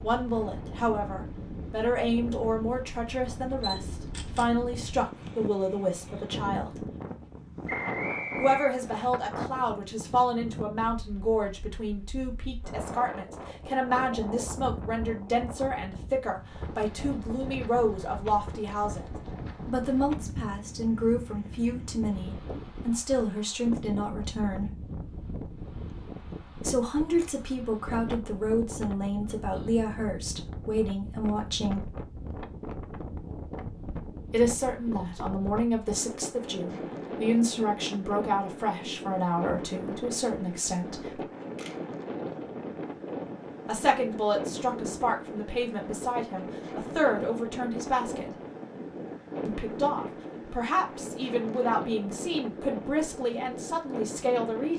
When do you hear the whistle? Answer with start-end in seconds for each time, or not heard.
7.7-9.1.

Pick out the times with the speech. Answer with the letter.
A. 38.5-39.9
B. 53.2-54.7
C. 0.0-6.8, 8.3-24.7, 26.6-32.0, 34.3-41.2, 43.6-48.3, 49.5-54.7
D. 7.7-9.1
C.